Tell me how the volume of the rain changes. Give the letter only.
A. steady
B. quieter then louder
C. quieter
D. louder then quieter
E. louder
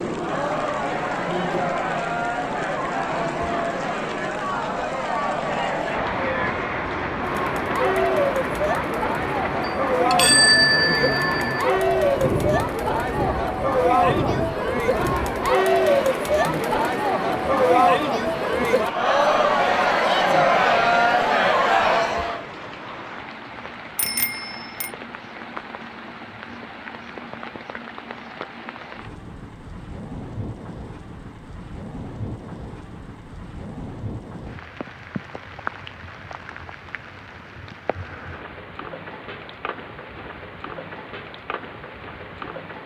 C.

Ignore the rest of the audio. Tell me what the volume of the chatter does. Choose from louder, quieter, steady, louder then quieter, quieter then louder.
louder.